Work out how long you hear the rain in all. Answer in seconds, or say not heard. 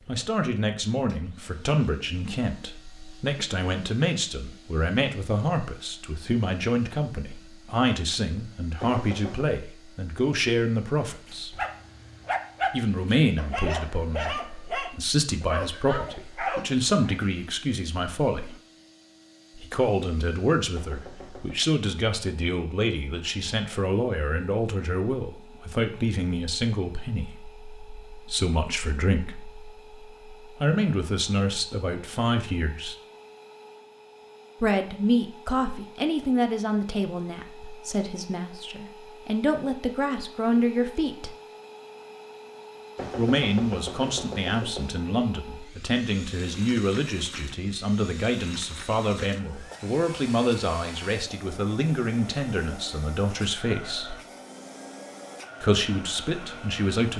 not heard.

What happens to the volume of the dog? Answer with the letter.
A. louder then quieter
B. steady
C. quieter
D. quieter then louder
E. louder
B.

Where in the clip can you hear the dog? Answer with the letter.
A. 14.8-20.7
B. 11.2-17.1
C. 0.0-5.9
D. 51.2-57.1
B.